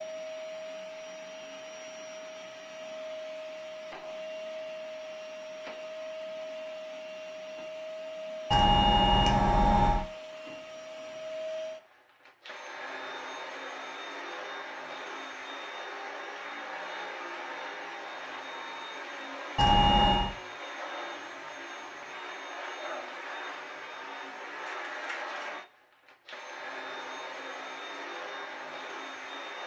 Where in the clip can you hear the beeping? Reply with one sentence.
You can hear the beeping from 8.5 to 10.1 s and from 19.6 to 20.4 s.